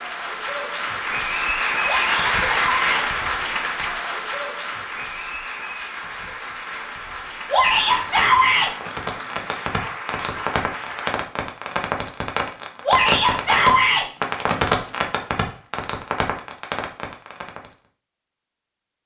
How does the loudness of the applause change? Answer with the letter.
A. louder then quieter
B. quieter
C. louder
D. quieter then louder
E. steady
B.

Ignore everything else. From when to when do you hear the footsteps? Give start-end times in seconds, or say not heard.
not heard.